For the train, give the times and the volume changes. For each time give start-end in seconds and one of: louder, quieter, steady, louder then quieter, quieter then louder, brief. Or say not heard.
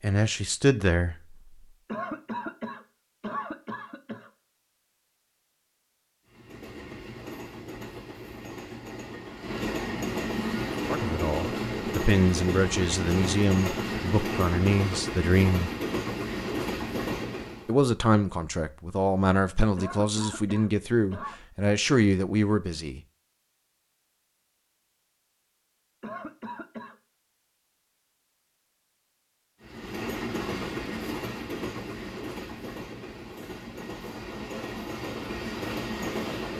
6.2-17.8 louder
29.6-36.5 quieter then louder.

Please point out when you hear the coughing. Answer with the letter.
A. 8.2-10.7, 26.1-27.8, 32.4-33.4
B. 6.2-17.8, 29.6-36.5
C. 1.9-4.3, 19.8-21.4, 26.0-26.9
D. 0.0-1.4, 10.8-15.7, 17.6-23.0
C.